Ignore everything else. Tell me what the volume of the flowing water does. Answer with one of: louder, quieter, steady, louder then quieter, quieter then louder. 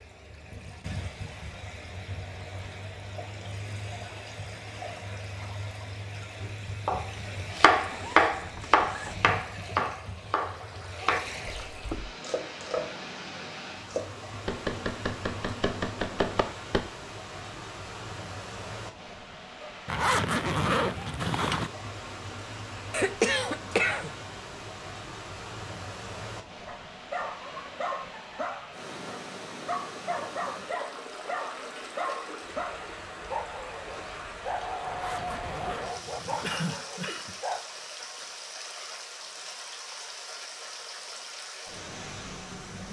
steady.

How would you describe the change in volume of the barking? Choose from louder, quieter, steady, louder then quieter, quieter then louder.
steady.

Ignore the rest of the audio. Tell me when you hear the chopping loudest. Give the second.
8 s.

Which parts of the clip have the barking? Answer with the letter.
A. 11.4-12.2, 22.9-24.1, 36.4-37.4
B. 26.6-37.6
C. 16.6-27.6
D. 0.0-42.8
B.